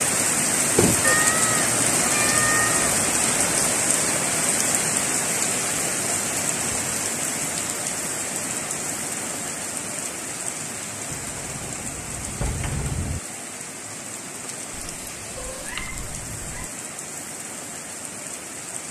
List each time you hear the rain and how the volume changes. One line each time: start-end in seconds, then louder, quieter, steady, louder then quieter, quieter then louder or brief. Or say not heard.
0.0-18.8 quieter.